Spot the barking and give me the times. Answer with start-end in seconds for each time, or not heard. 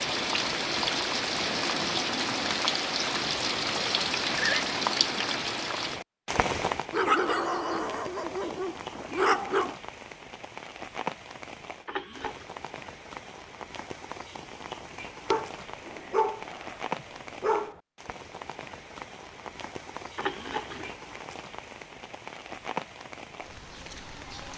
6.9-9.8, 15.2-17.8.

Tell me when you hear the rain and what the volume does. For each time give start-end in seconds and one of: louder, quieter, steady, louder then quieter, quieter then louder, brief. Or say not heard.
0.0-24.5 quieter.